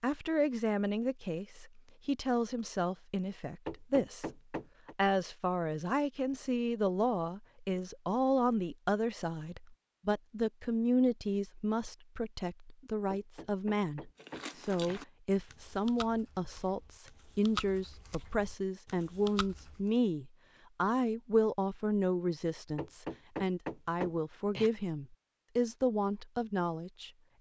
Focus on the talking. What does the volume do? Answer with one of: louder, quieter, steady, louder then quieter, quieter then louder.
steady.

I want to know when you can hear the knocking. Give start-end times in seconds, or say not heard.
3.6-5.0, 13.1-15.0, 22.8-24.7.